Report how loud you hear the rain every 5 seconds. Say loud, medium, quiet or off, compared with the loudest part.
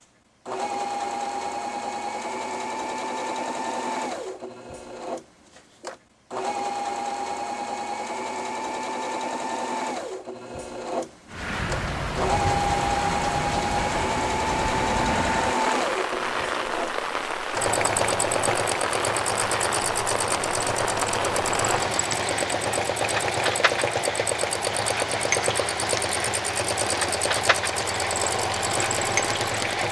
off, off, loud, loud, loud, loud.